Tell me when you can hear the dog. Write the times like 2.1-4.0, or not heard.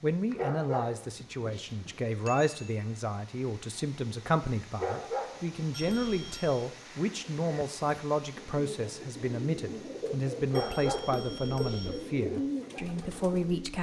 0.3-2.0, 4.8-6.4, 10.5-11.9.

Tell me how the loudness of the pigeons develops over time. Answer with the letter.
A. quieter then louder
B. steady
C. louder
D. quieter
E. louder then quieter
C.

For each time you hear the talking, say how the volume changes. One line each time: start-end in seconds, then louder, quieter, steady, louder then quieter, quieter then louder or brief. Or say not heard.
0.0-13.7 steady.